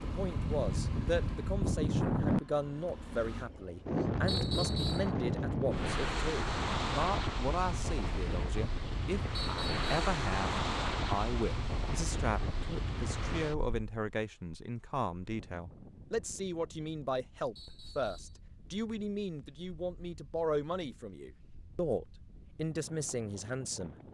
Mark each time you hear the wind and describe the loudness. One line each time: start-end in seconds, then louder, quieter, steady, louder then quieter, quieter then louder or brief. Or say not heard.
0.1-24.1 quieter.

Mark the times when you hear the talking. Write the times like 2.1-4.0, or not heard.
0.0-23.9.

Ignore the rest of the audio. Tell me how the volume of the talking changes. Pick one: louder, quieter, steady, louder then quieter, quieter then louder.
steady.